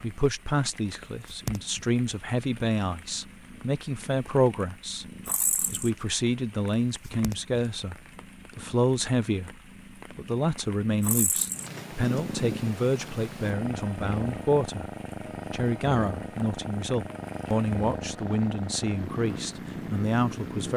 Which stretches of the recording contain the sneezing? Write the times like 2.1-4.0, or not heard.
not heard.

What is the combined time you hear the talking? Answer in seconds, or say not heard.
19 s.